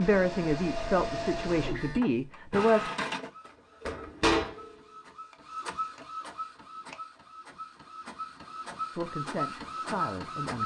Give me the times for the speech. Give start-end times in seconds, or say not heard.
0.0-2.9, 8.9-10.6.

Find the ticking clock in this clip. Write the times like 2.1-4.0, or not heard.
not heard.